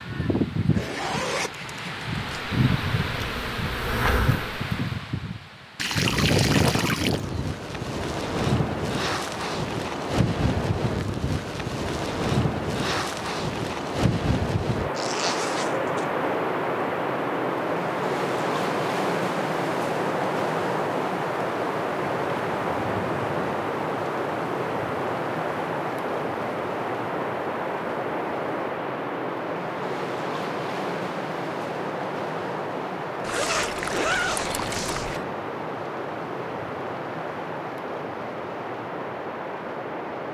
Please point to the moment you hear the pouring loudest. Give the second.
6 s.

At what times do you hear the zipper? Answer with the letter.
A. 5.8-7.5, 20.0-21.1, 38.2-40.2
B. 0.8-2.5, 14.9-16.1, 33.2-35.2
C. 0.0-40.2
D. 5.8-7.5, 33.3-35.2
B.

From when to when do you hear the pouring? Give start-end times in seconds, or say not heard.
5.8-7.5, 33.3-35.2.